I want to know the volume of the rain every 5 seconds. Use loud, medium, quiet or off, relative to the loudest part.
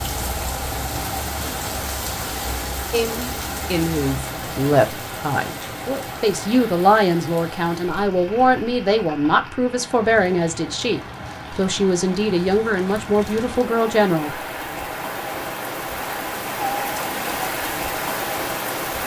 loud, medium, medium, loud.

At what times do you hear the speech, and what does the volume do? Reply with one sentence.
You can hear the speech from 2.9 to 14.3 s, at a steady volume.